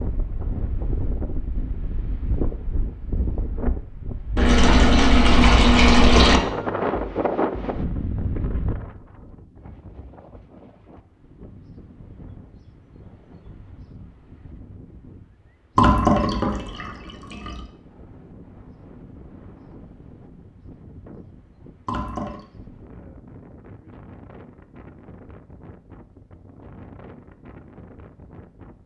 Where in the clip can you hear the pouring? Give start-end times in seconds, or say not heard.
4.3-6.4, 15.8-17.6, 21.9-22.4.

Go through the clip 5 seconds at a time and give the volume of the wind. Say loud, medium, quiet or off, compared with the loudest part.
medium, loud, quiet, quiet, quiet, quiet.